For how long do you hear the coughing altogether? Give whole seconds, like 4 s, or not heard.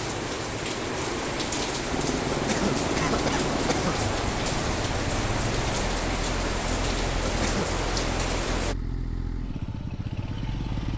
2 s.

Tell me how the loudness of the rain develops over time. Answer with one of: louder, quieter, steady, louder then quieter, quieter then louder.
steady.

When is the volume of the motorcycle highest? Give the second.
3 s.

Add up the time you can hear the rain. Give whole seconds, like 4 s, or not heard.
9 s.